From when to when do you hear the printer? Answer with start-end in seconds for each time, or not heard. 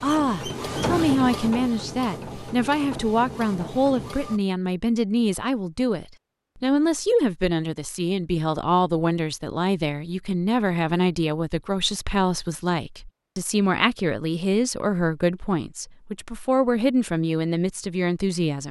0.0-4.4.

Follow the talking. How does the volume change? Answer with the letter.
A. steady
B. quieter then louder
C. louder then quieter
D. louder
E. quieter
A.